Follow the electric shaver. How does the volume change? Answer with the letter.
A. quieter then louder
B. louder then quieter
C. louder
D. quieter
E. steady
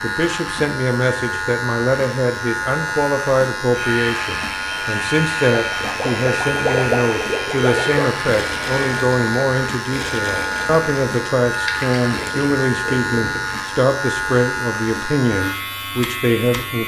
E.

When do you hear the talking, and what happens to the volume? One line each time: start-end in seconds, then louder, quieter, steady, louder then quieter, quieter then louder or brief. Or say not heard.
0.0-16.8 steady.